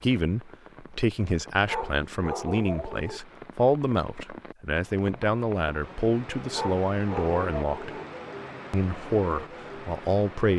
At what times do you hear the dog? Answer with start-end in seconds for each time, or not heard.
1.6-3.2, 6.5-8.1.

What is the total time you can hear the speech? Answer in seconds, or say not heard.
10 s.